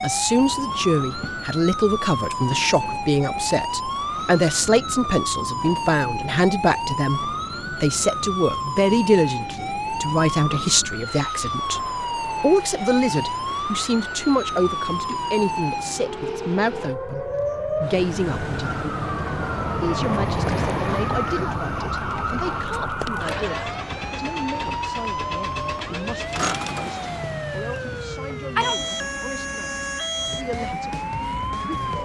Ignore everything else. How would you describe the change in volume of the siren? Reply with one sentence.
The loudness of the siren stays about the same.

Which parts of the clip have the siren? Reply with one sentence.
The siren can be heard from 0.0 to 31.9 s.